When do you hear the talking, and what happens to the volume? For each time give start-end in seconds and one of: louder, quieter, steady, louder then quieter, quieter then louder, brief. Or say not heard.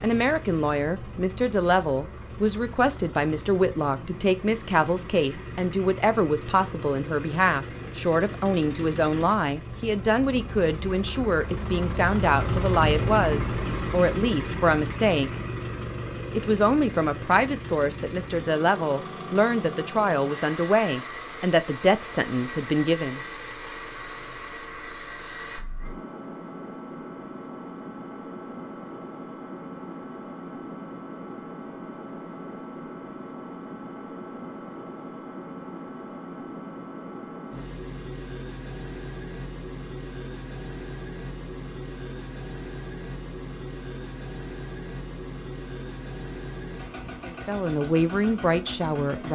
0.0-15.3 steady
16.4-23.2 steady
47.2-49.3 brief.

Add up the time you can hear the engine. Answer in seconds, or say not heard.
49 s.